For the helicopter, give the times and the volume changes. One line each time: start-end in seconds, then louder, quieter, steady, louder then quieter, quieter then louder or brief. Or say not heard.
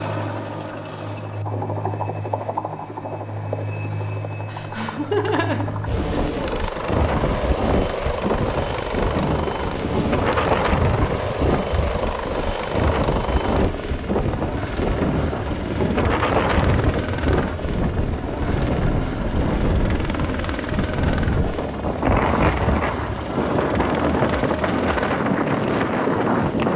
0.0-26.7 steady.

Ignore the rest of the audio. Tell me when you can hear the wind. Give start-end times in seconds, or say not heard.
5.6-26.7.